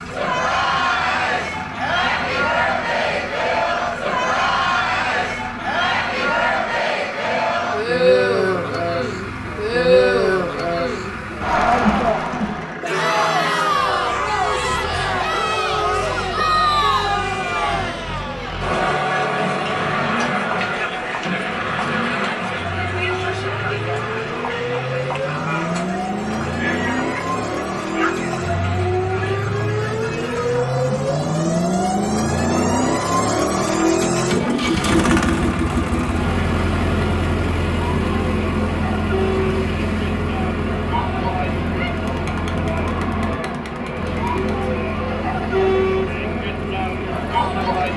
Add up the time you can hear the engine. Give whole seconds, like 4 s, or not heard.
48 s.